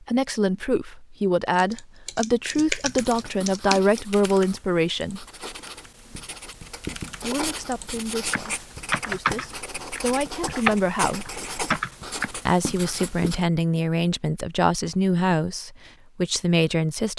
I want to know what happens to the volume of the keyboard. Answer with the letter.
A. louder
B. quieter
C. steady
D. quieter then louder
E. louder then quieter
D.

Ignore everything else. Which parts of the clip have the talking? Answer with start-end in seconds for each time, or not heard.
0.1-5.2, 7.2-11.3, 12.4-17.1.